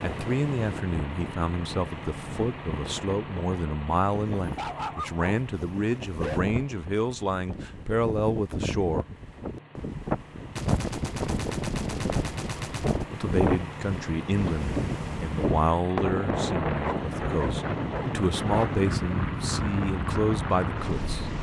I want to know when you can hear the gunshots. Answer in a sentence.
The gunshots can be heard from 10.6 to 13.1 s.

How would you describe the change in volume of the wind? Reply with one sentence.
The volume of the wind goes up.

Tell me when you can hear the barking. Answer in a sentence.
You can hear the barking from 4.3 to 6.5 s and from 16.7 to 19.1 s.